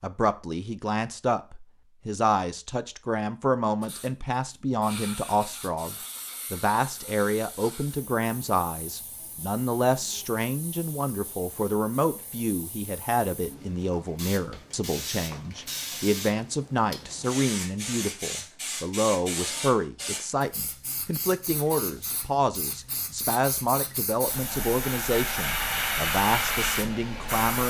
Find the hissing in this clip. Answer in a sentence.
The hissing can be heard from 3.8 to 27.6 s.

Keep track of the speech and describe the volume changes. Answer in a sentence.
The volume of the speech stays about the same.